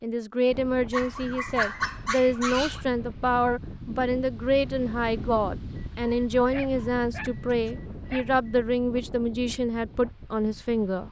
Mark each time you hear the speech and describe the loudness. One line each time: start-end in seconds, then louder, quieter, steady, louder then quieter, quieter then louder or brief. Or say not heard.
0.0-11.0 steady.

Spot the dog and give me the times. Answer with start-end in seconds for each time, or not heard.
0.9-2.9, 5.8-8.6.